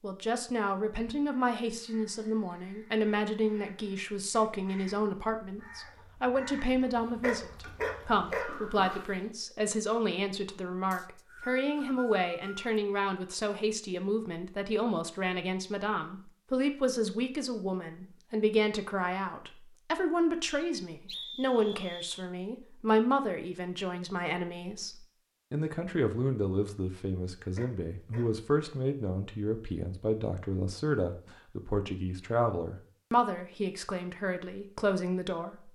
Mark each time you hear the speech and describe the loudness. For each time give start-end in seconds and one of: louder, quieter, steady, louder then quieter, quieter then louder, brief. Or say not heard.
0.0-35.6 steady.